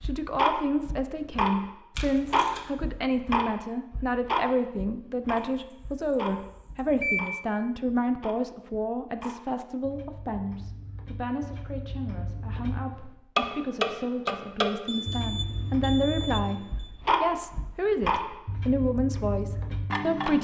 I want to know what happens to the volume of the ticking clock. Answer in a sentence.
The volume of the ticking clock goes down, then up.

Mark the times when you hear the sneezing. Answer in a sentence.
You can't hear the sneezing here.